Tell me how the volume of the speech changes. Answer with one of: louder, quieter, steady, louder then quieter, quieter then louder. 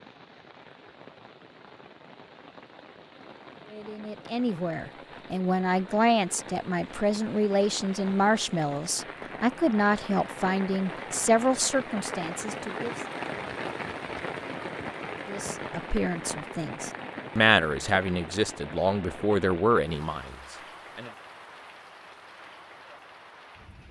steady.